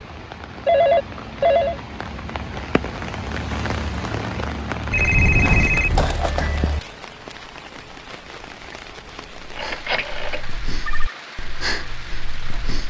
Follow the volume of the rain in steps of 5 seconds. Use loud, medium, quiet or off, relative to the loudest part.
loud, medium, medium.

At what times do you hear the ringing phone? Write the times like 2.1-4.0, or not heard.
0.7-1.8, 4.9-6.8, 9.6-11.2.